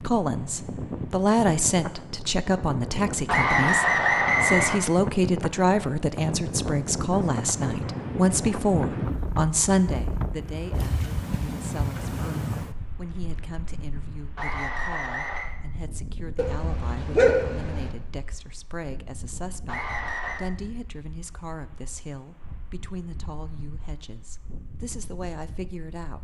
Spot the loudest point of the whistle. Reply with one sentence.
The volume of the whistle peaks at 4 seconds.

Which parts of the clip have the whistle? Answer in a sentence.
The whistle can be heard from 3.2 to 4.8 s, from 14.3 to 15.5 s and from 19.6 to 20.4 s.